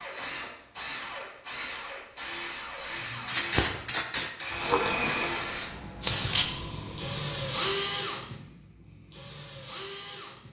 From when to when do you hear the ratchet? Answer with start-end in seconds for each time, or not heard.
not heard.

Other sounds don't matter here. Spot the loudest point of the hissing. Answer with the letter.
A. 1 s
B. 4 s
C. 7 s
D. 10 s
B.